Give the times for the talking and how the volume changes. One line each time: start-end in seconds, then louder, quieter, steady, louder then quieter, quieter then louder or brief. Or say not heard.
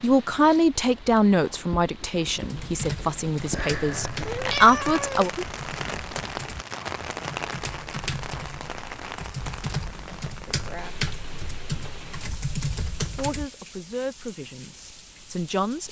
0.0-5.3 quieter then louder
13.2-15.8 brief.